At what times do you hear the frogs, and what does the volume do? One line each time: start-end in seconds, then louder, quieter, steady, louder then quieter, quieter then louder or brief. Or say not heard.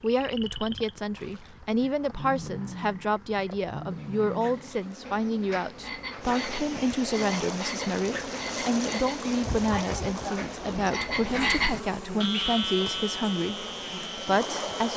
0.0-14.9 louder.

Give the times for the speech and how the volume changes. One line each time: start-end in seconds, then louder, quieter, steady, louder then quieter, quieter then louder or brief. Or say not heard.
0.0-14.9 steady.